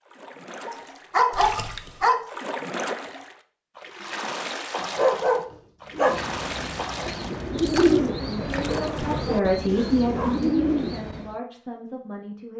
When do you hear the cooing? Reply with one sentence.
You can hear the cooing from 5.9 to 11.3 s.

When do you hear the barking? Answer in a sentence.
You can hear the barking from 0.7 to 2.3 s, from 4.8 to 6.2 s and from 8.7 to 10.4 s.